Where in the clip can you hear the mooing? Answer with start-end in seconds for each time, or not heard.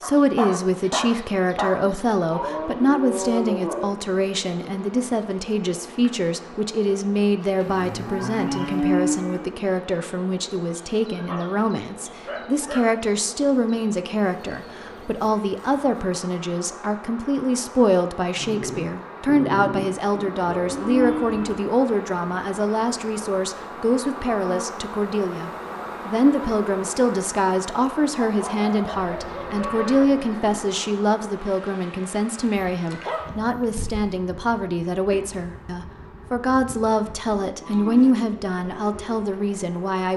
1.9-3.9, 7.6-9.5, 14.4-16.1, 20.4-21.6, 29.0-30.6, 37.4-38.1.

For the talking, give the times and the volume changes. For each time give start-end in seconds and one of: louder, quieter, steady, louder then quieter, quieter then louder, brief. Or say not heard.
0.0-40.1 steady.